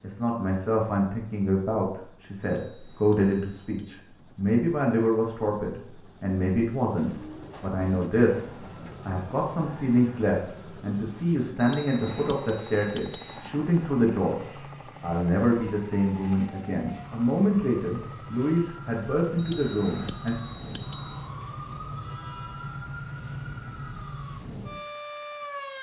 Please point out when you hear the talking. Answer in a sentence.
You can hear the talking from 0.0 to 14.4 s and from 15.0 to 20.4 s.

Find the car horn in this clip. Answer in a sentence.
The car horn can't be heard in this clip.